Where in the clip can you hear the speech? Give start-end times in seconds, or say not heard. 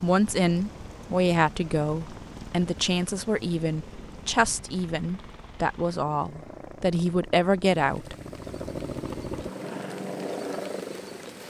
0.0-8.2.